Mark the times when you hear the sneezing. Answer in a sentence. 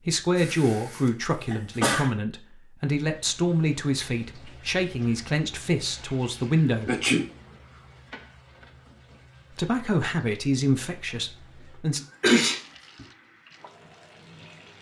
The sneezing can be heard from 0.3 to 2.1 s, from 6.8 to 7.2 s and from 12.0 to 13.1 s.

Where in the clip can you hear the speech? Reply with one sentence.
You can hear the speech from 0.1 to 6.9 s and from 9.5 to 12.0 s.